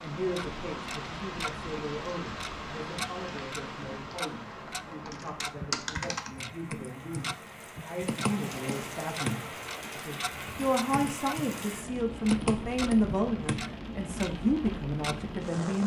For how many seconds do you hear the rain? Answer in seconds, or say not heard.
16 s.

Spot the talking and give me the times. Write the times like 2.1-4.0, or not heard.
0.0-15.8.